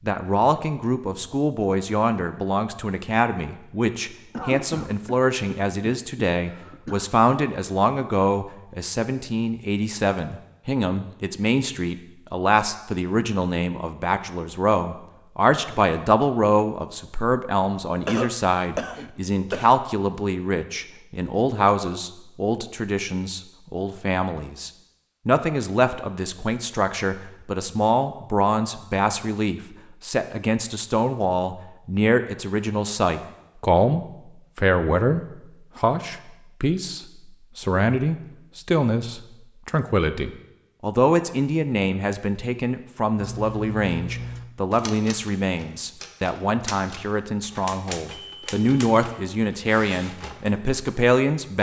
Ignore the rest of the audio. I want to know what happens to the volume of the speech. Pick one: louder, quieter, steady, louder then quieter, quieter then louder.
steady.